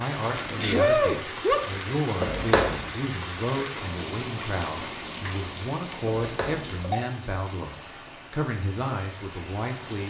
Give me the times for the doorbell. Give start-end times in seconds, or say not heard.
2.2-2.9, 6.2-7.0.